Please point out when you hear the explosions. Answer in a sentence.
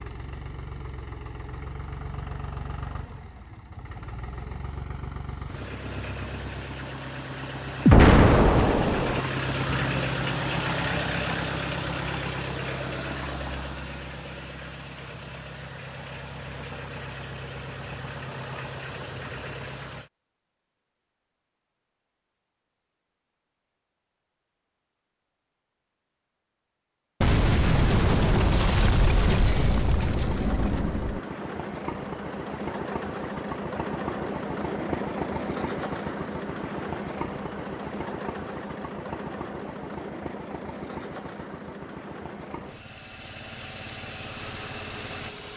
You can hear the explosions from 7.8 to 9.2 s and from 27.2 to 31.2 s.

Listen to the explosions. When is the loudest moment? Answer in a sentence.
The volume of the explosions peaks at 8 seconds.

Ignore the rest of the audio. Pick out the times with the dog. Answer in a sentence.
You can't hear the dog here.